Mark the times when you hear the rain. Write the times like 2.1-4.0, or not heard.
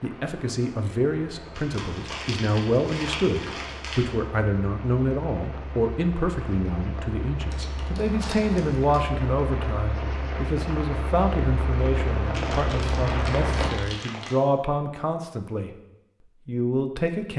0.0-13.7.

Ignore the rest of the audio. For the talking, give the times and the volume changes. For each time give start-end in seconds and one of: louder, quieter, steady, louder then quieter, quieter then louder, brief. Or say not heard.
0.0-17.3 steady.